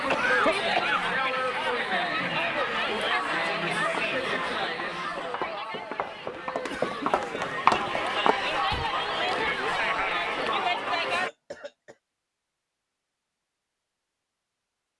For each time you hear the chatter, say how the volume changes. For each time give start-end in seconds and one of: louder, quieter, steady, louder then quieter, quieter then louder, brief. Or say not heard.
0.0-11.3 quieter then louder.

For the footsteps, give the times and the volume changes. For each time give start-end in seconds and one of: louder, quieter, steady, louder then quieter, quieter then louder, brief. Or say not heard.
3.9-8.8 louder.